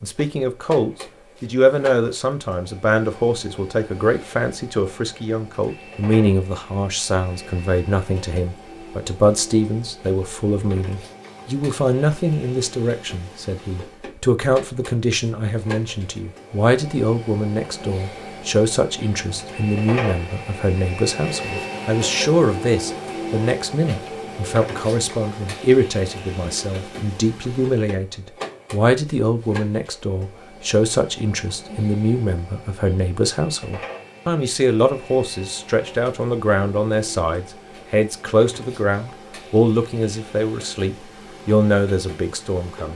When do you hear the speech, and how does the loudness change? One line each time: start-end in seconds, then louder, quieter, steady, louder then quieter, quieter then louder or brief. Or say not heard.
0.0-42.8 steady.